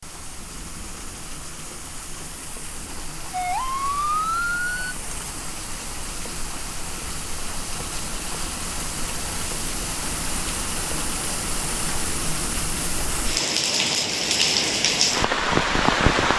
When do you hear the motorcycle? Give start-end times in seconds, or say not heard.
not heard.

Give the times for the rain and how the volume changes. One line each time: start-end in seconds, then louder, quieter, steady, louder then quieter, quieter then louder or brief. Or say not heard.
0.0-16.3 louder.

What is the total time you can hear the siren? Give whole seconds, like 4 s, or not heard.
2 s.